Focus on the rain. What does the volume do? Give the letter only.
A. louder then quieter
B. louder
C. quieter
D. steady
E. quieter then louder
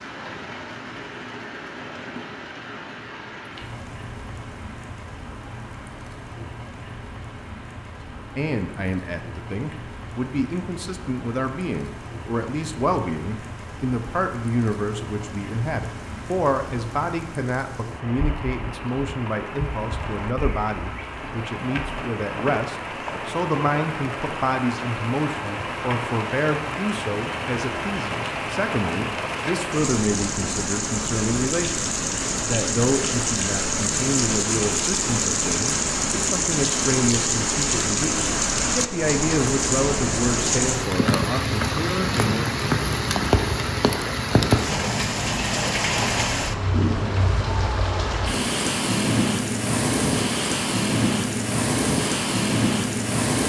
B.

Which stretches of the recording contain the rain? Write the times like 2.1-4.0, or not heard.
0.0-53.4.